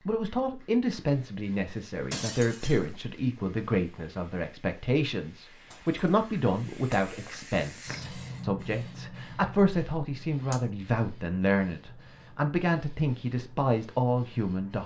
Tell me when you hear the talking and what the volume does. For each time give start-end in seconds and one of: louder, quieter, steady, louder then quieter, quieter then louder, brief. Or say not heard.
0.0-14.8 steady.